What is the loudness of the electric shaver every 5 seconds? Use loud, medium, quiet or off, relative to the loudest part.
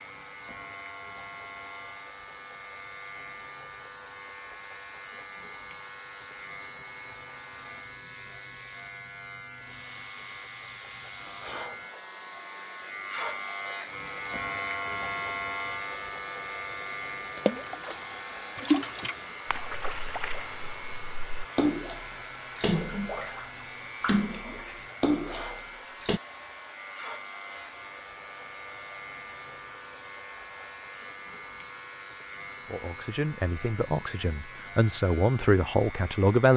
medium, medium, loud, loud, medium, medium, medium, medium.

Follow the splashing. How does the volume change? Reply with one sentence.
The loudness of the splashing goes down, then up.